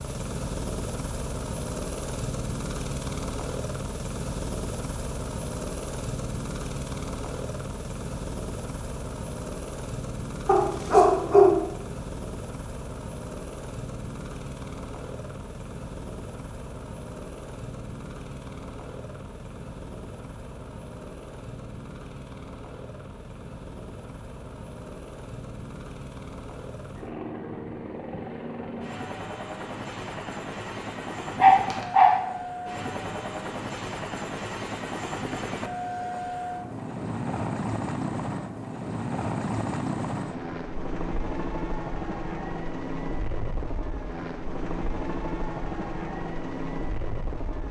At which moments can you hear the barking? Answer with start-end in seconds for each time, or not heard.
10.4-11.6, 31.4-32.1.